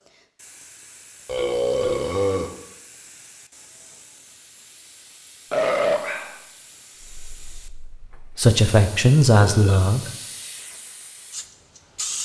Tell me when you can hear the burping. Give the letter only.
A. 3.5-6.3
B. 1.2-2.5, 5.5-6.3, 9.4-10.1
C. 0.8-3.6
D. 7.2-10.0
B.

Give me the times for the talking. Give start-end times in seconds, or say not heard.
7.2-10.0.